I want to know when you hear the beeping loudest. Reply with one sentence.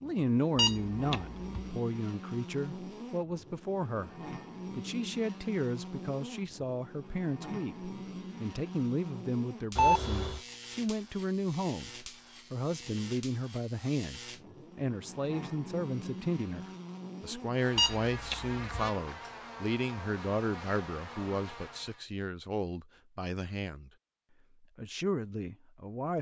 The volume of the beeping peaks at 10 seconds.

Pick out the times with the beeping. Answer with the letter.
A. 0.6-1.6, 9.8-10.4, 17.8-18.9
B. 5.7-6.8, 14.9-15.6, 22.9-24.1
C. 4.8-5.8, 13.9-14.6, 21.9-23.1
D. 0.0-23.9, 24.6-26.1
A.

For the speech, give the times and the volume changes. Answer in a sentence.
You can hear the speech from 0.0 to 23.9 s, at a steady volume; and briefly from 24.6 to 26.1 s.